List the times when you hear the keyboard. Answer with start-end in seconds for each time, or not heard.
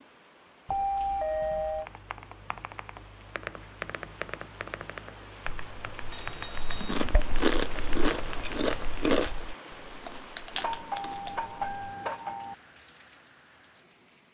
1.8-9.1.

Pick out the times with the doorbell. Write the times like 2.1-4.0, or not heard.
0.7-1.9, 6.1-7.0, 10.6-12.6.